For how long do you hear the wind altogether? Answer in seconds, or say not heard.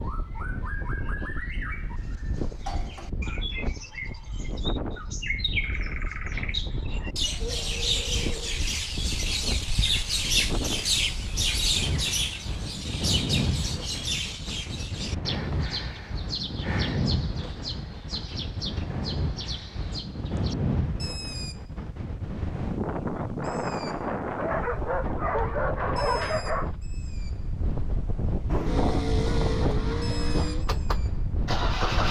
32 s.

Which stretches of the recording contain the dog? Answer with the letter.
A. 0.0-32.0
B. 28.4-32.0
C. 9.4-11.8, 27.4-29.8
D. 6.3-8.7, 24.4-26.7
D.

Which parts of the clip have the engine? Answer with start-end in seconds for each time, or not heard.
28.4-32.0.